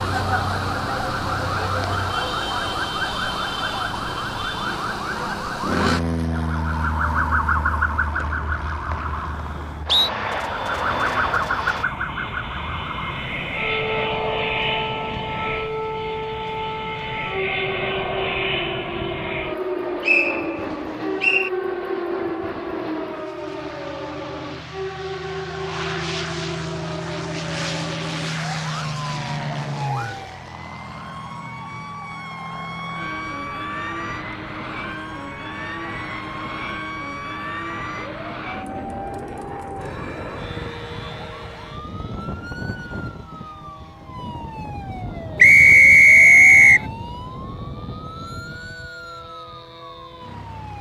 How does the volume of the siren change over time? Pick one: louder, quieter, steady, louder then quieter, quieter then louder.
quieter.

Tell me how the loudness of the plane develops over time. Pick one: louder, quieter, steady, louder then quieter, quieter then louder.
quieter.